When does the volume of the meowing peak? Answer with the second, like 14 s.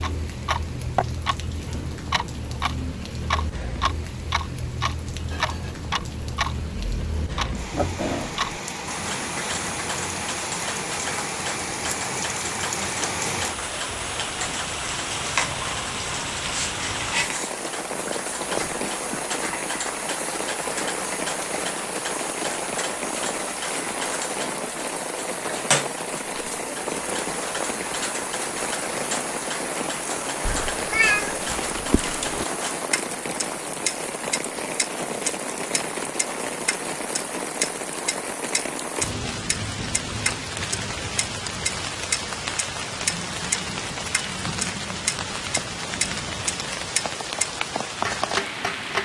31 s.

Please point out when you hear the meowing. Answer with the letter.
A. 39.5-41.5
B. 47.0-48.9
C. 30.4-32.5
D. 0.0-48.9
C.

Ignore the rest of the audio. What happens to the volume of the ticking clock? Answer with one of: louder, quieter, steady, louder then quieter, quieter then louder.
steady.